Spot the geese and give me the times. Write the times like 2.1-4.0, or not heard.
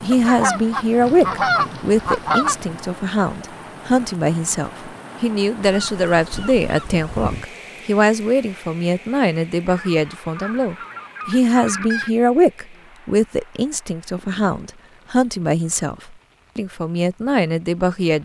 0.1-2.5, 5.7-7.5, 9.7-12.1, 14.2-16.0.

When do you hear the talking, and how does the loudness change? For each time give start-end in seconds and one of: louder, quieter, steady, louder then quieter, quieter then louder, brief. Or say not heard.
0.0-18.2 steady.